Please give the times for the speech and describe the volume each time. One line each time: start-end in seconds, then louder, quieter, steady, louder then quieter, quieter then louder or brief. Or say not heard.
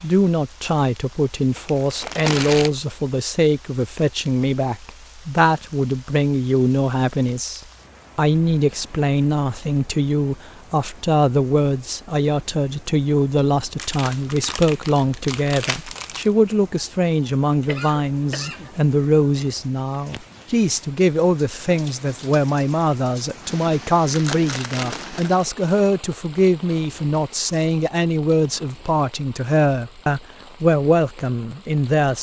0.0-32.1 steady.